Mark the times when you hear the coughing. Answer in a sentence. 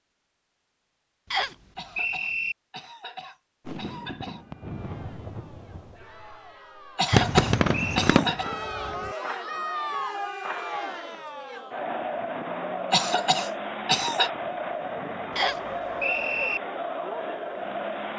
You can hear the coughing from 1.8 to 4.5 s, from 7.0 to 8.5 s and from 12.9 to 14.3 s.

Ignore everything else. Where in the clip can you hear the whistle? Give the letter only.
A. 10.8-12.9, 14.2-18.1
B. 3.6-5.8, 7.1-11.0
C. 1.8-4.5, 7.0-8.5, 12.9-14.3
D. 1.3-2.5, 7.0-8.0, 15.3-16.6
D.